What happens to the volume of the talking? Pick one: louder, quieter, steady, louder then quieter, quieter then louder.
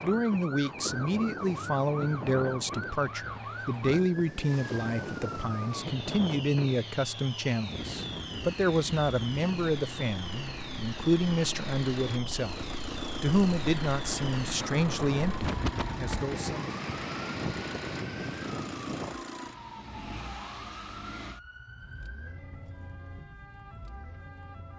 steady.